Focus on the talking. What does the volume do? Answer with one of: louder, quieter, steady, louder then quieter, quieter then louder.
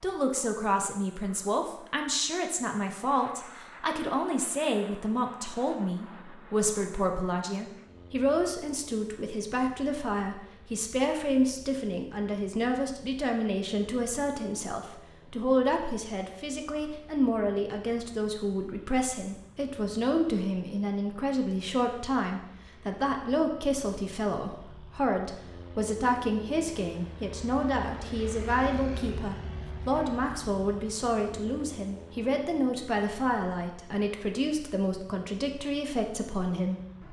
steady.